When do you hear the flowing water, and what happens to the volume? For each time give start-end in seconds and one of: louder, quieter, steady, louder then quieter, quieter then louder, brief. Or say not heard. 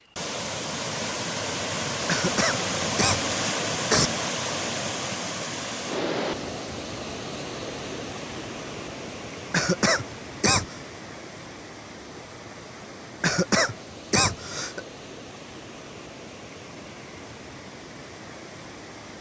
0.0-19.1 quieter.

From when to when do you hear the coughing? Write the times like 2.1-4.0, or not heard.
2.0-4.1, 9.5-10.8, 13.2-14.8.